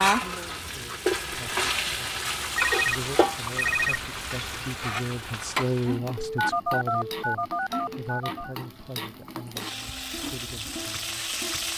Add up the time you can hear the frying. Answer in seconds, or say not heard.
12 s.